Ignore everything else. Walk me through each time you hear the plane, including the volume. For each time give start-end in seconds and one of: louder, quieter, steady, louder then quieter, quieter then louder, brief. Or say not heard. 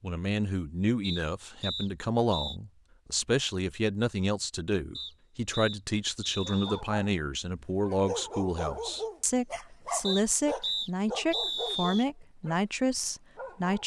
not heard.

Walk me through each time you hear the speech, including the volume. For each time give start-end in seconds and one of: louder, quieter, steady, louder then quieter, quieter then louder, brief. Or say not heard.
0.0-13.8 steady.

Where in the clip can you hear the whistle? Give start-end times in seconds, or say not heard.
1.0-2.5, 5.0-6.8, 10.1-12.1.